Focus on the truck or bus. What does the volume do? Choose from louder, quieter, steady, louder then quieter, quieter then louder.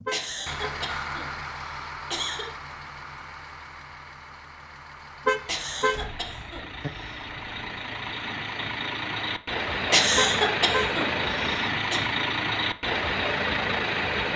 quieter then louder.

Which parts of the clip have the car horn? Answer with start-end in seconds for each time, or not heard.
0.1-0.7, 5.2-6.9, 10.2-10.9.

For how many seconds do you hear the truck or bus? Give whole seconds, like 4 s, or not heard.
14 s.